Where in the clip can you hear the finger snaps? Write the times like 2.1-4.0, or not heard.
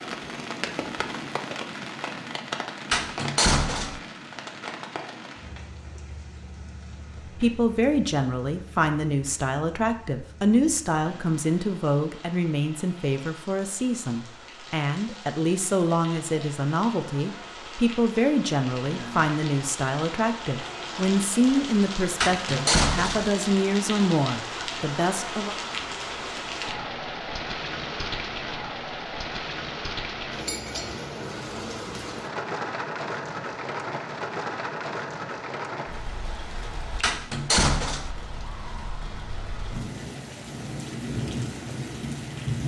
not heard.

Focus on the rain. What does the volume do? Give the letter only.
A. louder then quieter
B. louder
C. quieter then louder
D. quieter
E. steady
C.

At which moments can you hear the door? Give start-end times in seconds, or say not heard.
2.9-4.0, 22.2-23.3, 37.0-38.1.